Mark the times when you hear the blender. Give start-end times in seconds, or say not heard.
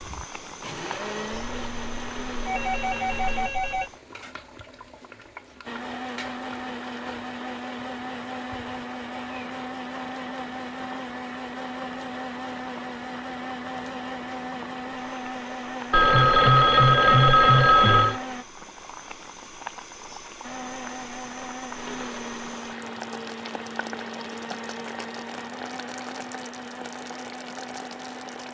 0.0-3.5, 5.7-18.4, 20.4-28.4.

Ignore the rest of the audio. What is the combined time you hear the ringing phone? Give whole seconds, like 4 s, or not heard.
5 s.